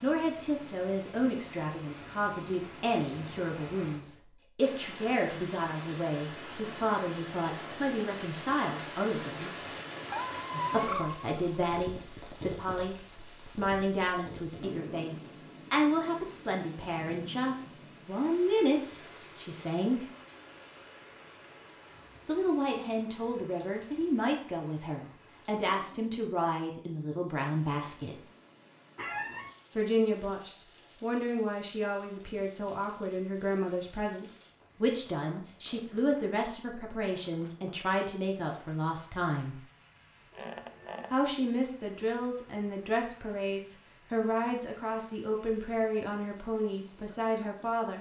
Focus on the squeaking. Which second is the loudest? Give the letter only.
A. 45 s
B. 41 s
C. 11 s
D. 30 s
C.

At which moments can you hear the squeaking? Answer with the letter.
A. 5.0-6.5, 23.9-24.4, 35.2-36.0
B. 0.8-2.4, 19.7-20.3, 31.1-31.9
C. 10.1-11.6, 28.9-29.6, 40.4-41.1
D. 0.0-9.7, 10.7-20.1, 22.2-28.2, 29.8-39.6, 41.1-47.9
C.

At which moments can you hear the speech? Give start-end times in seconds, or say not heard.
0.0-9.7, 10.7-20.1, 22.2-28.2, 29.8-39.6, 41.1-47.9.